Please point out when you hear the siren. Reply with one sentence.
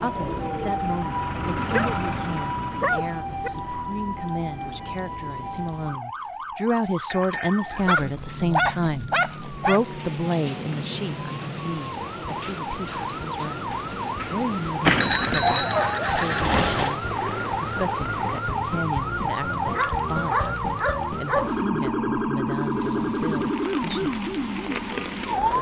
You can hear the siren from 0.0 to 25.5 s.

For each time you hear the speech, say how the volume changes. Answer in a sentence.
The speech can be heard from 0.0 to 24.1 s, getting louder then quieter.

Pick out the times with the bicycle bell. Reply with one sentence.
The bicycle bell can be heard from 7.1 to 8.1 s and from 14.8 to 16.9 s.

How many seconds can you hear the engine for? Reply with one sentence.
The engine can be heard for 6 seconds in total.